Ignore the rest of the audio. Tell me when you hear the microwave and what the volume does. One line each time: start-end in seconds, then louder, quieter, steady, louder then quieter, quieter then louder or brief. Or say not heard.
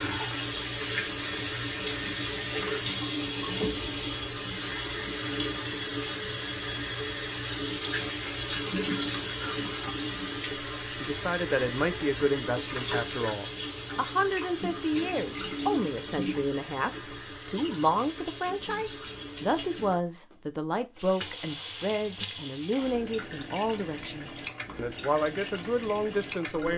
not heard.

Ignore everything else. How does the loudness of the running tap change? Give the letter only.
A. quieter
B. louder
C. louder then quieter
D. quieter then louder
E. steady
A.